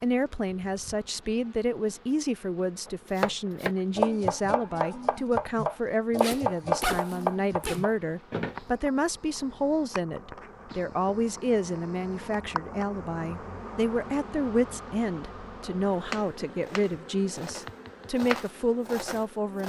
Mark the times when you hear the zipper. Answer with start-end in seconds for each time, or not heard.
6.2-7.8.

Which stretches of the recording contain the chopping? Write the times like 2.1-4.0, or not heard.
2.9-8.7, 15.9-19.6.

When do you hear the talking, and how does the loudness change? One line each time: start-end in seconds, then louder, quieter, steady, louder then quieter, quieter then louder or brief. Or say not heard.
0.0-19.6 steady.